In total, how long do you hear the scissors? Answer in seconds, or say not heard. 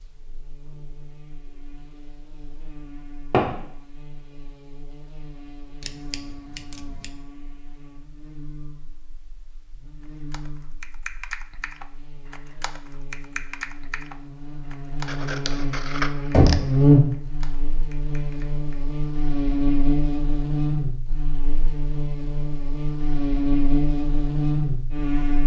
3 s.